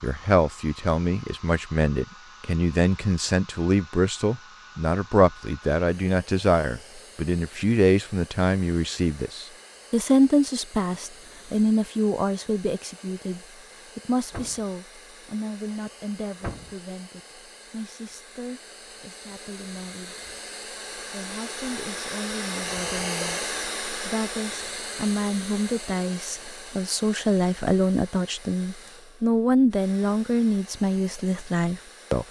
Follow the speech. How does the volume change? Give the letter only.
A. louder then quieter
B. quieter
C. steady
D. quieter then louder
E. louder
D.